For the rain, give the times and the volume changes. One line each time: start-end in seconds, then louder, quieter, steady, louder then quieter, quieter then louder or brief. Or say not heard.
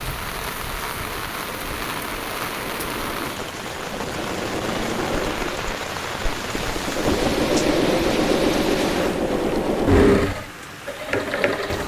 0.0-11.8 quieter.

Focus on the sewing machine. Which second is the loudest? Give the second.
10 s.